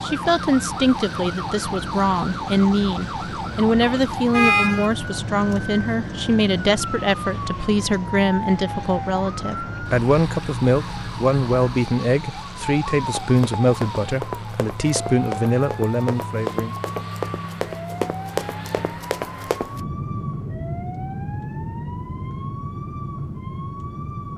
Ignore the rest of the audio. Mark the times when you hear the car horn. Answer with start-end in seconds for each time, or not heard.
3.9-4.9.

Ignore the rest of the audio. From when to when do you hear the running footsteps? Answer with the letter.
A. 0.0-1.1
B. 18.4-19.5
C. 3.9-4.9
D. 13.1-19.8
D.